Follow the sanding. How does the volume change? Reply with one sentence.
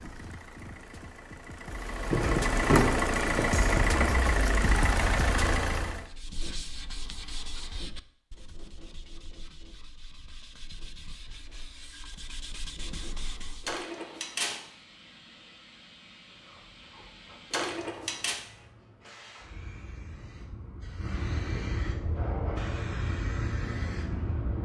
The volume of the sanding goes down, then up.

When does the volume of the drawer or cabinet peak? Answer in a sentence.
The loudest moment of the drawer or cabinet is at 3 seconds.